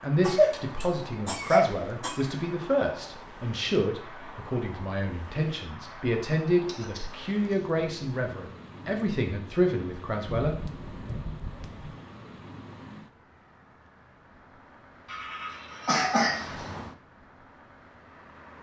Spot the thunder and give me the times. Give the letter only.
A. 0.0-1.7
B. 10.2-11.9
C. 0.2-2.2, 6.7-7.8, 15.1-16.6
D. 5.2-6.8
B.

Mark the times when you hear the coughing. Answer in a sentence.
You can hear the coughing from 0.2 to 2.2 s, from 6.7 to 7.8 s and from 15.1 to 16.6 s.